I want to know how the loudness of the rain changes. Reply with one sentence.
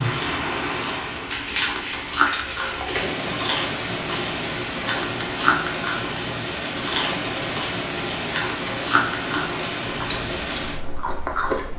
The loudness of the rain stays about the same.